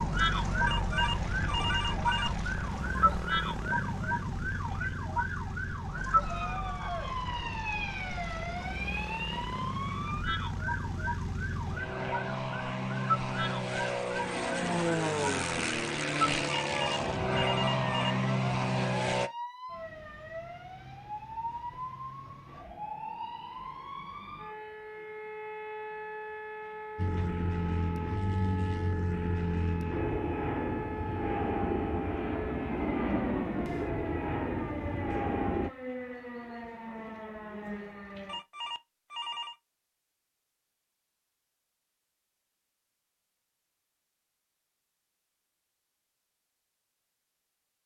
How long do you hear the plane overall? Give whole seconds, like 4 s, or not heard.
28 s.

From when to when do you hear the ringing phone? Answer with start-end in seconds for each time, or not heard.
0.7-2.3, 16.7-18.1, 38.2-39.5.